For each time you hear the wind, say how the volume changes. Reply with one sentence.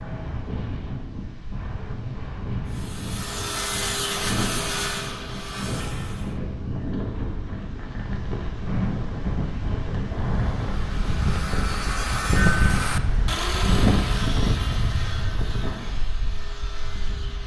The wind can be heard from 0.0 to 17.4 s, getting louder.